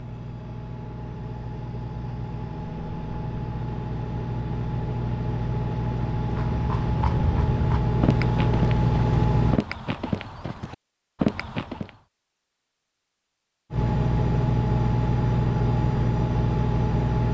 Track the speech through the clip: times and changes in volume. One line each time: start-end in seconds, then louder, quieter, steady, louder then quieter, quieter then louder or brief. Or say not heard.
not heard.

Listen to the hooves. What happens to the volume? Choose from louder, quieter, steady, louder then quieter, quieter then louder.
louder.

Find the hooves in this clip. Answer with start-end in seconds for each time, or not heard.
6.2-11.9.